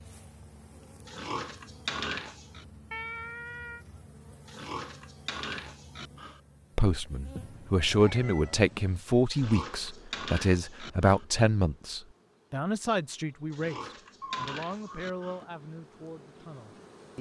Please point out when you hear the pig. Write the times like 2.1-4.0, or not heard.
1.1-2.6, 4.5-6.4, 9.3-11.2, 13.5-15.4.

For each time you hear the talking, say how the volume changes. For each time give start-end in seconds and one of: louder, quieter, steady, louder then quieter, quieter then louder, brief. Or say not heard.
6.8-17.1 quieter.